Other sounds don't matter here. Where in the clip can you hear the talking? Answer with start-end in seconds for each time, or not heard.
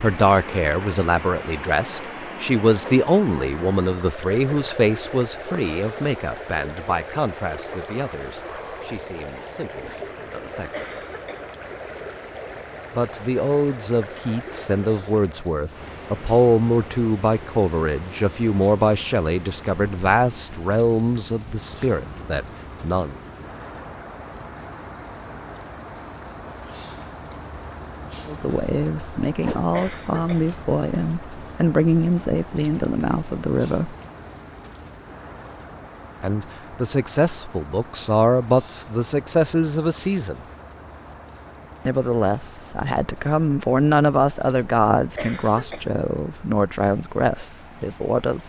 0.0-10.8, 12.9-23.1, 28.2-34.0, 36.2-40.4, 41.9-48.4.